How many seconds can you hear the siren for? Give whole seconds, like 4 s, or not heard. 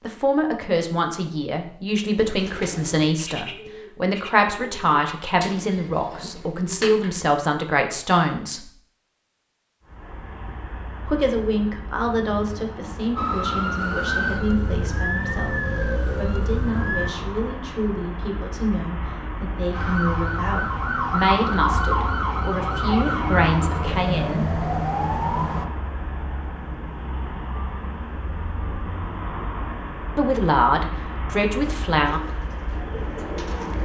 10 s.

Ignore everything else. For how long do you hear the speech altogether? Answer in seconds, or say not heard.
24 s.